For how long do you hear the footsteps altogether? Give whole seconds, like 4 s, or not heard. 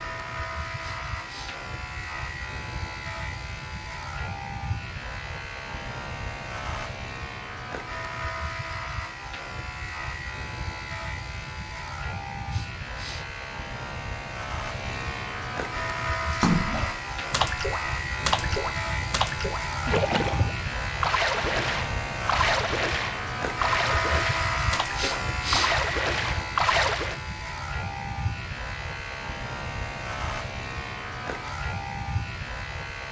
not heard.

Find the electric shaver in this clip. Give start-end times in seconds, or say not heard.
0.0-33.0.